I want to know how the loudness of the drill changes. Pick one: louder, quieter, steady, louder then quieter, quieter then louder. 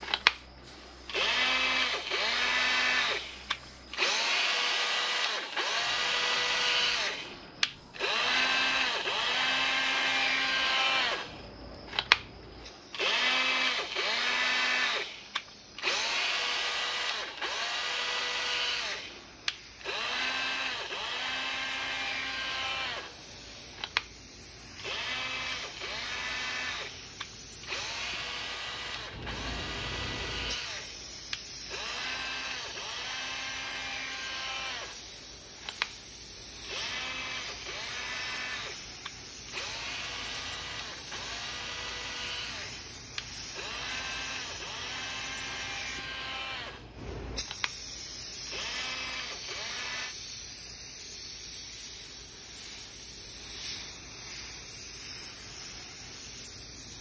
quieter.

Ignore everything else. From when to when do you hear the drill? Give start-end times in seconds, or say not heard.
0.0-50.1.